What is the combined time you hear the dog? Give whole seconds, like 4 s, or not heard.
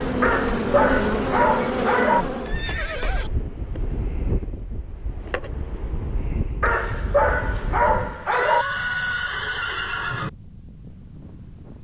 4 s.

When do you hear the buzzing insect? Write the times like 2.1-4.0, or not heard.
0.0-2.6.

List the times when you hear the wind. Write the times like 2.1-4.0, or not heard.
0.0-11.7.